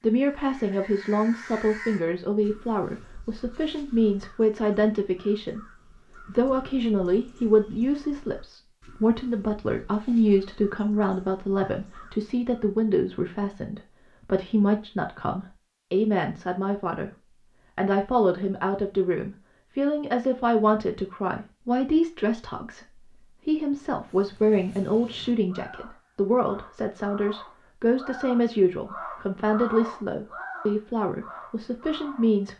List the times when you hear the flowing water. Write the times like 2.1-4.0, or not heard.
not heard.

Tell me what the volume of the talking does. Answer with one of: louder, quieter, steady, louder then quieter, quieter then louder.
steady.